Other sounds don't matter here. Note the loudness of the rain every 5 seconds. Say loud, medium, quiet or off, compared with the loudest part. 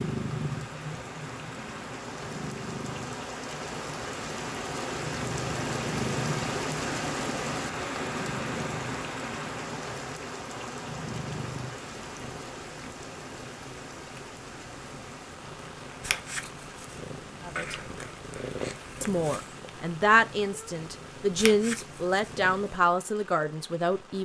medium, loud, medium, quiet, quiet.